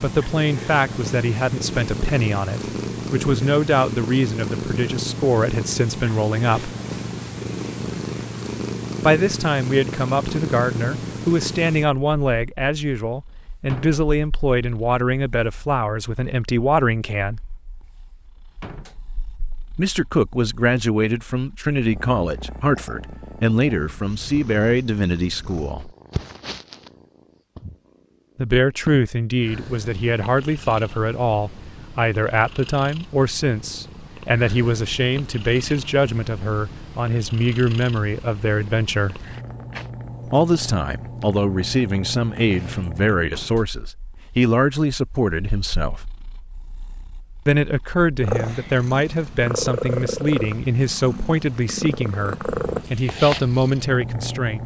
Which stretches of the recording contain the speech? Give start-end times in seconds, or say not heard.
0.0-6.7, 9.0-17.4, 19.8-25.9, 28.4-39.2, 40.2-46.0, 47.5-54.6.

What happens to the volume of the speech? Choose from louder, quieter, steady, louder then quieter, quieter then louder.
steady.